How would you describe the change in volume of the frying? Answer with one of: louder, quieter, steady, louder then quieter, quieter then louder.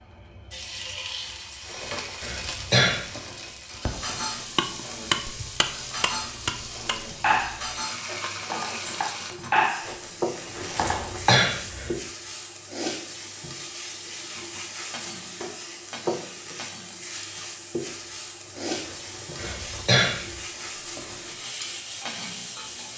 steady.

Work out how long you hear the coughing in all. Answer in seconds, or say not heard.
3 s.